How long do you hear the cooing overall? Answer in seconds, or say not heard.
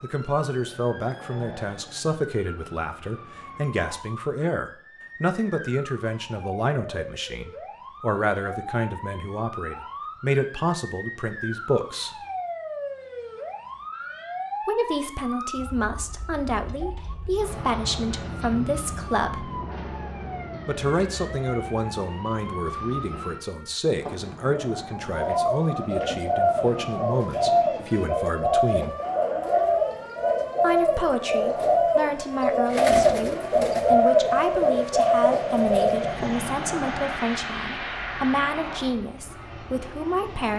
11 s.